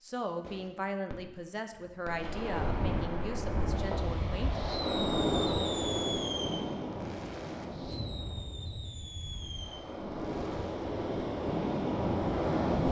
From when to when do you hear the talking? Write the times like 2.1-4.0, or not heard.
0.0-4.7.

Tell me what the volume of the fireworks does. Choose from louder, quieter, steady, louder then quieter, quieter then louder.
louder then quieter.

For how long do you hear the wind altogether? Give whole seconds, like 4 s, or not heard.
11 s.